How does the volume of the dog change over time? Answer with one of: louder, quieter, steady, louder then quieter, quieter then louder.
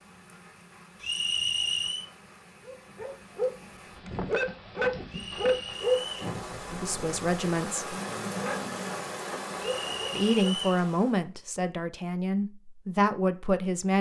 quieter.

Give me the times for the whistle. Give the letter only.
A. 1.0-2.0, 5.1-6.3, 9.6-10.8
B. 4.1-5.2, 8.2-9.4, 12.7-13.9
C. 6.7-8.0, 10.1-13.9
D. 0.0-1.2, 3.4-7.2
A.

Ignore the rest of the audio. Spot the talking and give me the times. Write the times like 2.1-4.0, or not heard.
6.7-8.0, 10.1-13.9.